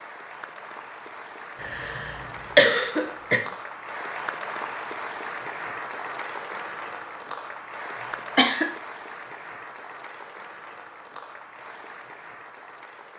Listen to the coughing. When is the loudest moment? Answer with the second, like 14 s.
3 s.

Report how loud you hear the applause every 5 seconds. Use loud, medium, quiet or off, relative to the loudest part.
loud, loud, medium.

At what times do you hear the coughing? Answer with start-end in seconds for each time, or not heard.
1.6-3.4, 8.0-8.7.